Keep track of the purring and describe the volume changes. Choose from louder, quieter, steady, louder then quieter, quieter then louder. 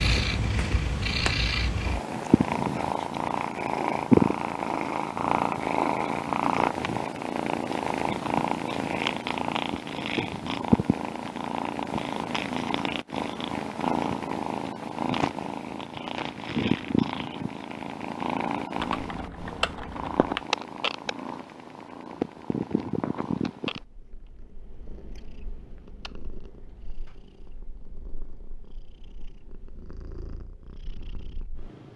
quieter.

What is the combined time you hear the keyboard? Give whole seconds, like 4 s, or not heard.
2 s.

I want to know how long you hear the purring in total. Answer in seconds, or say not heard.
32 s.